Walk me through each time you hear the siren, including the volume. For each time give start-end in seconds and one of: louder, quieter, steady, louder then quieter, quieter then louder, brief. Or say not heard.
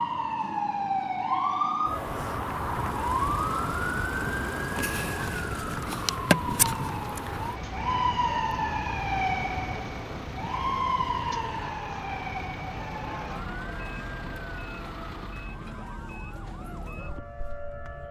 0.0-18.0 quieter.